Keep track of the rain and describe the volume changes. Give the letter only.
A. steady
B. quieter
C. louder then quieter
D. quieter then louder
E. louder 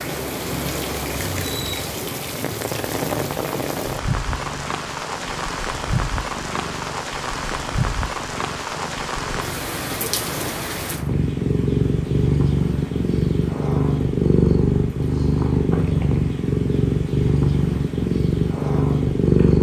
B.